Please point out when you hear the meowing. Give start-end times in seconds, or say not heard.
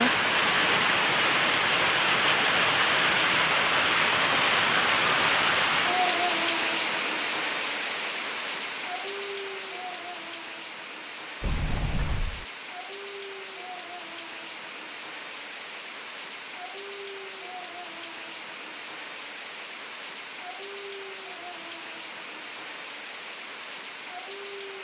not heard.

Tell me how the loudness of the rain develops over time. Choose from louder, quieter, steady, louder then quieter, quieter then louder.
quieter.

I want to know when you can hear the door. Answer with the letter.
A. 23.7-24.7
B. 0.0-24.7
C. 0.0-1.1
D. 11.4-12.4
D.